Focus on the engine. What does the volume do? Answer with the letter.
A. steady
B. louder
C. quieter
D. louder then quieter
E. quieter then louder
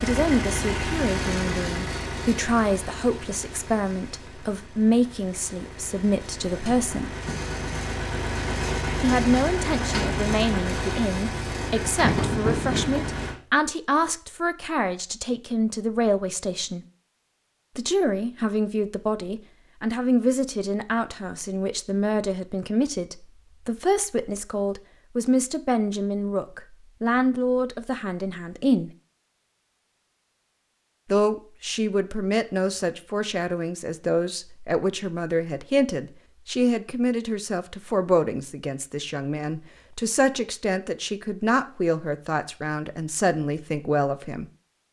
E.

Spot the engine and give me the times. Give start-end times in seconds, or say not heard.
0.0-13.3.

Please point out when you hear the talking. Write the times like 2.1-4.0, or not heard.
0.0-7.1, 9.0-16.9, 17.8-28.9, 31.1-44.5.